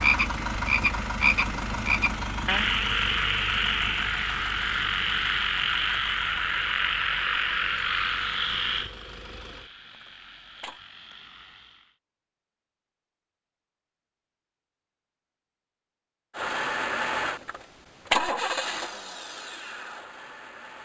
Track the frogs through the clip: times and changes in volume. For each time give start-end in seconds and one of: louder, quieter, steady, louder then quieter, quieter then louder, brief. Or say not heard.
0.0-11.9 quieter.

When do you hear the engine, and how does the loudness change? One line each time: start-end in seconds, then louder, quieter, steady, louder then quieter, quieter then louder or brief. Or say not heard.
0.0-10.8 quieter
16.3-20.7 quieter.